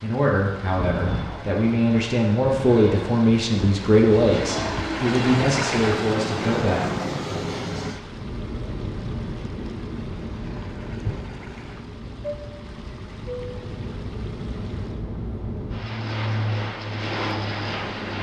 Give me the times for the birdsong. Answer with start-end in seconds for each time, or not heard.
not heard.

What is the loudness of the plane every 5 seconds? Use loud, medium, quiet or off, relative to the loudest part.
loud, loud, medium, loud.